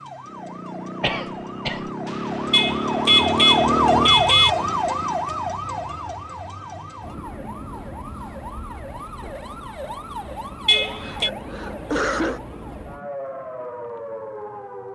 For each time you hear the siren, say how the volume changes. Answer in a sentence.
You can hear the siren from 0.0 to 14.9 s, getting louder then quieter.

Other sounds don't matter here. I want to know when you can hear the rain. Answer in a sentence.
The rain can't be heard in this clip.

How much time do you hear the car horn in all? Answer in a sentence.
You can hear the car horn for 3 seconds altogether.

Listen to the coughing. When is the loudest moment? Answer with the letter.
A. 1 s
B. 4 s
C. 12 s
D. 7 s
C.